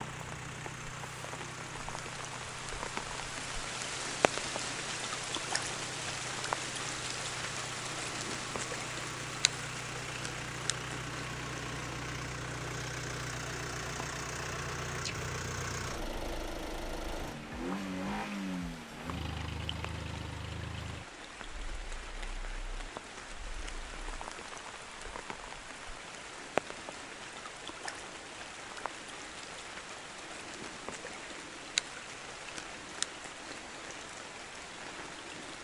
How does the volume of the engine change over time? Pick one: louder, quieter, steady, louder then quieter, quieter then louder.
louder.